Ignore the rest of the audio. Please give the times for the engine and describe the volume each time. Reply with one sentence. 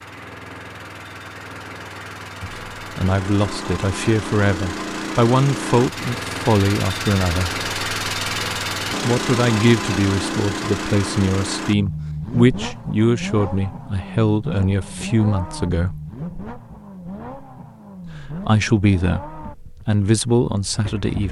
The engine can be heard from 0.0 to 21.2 s, getting louder then quieter.